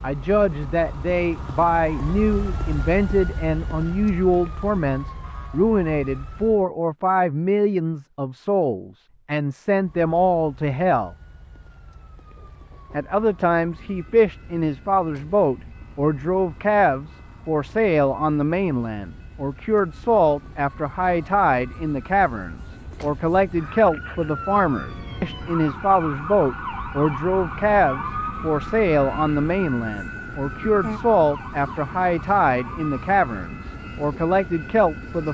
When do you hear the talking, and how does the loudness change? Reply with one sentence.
The talking can be heard from 0.0 to 11.2 s, at a steady volume; and from 12.9 to 35.2 s, at a steady volume.